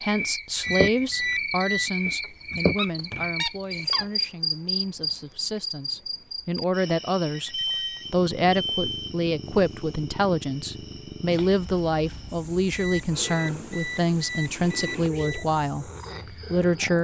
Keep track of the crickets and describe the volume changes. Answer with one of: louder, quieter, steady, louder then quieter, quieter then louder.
quieter.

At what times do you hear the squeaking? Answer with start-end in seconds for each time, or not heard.
2.0-4.1.